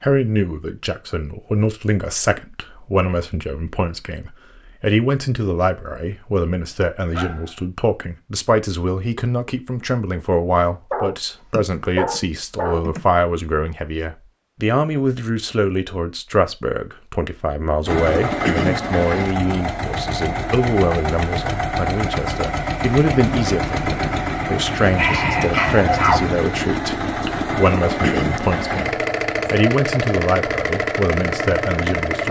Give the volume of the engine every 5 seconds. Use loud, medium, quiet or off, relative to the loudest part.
off, off, off, loud, loud, loud, loud.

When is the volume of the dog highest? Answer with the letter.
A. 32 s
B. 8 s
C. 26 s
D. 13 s
C.